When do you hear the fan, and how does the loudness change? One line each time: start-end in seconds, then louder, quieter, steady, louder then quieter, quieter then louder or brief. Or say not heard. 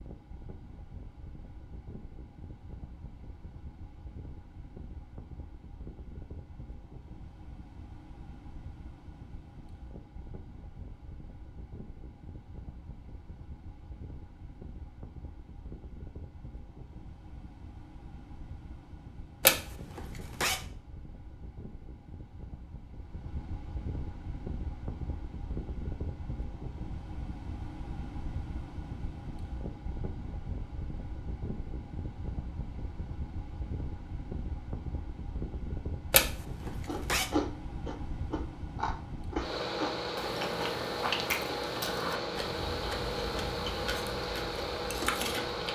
0.0-45.7 louder.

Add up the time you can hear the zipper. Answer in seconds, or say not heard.
2 s.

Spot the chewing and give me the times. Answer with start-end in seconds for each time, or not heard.
36.9-45.7.